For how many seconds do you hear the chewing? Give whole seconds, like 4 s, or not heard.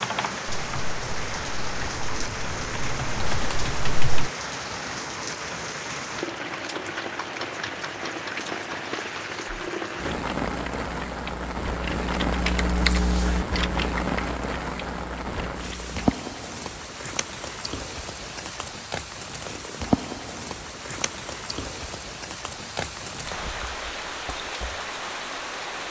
not heard.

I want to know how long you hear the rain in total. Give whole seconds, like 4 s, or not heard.
26 s.